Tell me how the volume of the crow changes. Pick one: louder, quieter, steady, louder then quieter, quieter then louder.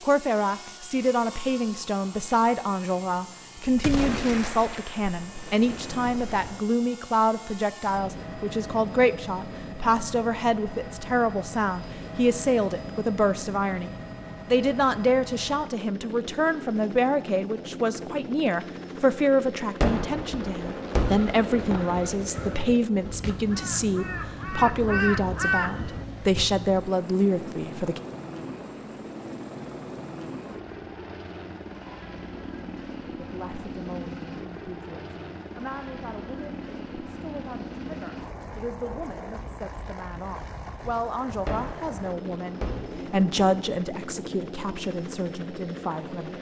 louder.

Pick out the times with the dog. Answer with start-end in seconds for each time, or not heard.
not heard.